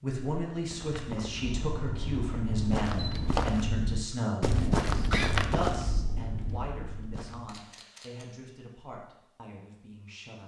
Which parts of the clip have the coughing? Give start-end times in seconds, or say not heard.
5.1-5.5.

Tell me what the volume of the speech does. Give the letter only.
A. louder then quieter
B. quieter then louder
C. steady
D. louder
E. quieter
E.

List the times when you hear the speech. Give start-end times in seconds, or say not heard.
0.0-10.4.